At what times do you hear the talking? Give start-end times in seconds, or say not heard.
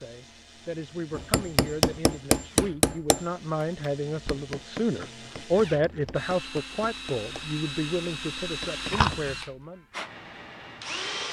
0.0-9.8.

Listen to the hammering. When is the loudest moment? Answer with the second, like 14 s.
2 s.